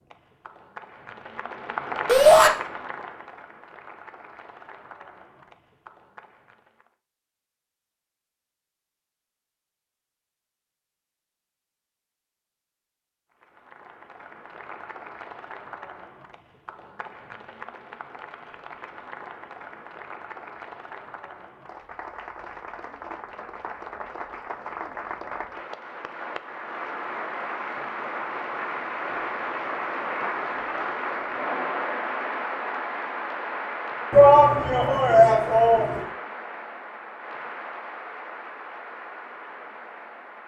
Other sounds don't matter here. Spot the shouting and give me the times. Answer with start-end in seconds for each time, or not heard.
2.0-2.5, 34.1-36.0.